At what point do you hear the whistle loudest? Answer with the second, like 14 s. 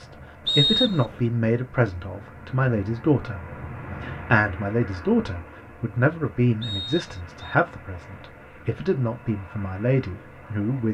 1 s.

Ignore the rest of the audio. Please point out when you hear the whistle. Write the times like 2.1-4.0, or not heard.
0.5-1.2, 6.6-7.5.